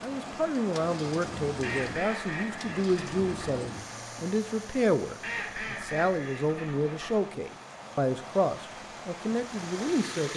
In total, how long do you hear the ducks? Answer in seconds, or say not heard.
4 s.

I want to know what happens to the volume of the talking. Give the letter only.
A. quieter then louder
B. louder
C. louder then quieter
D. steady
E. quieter
D.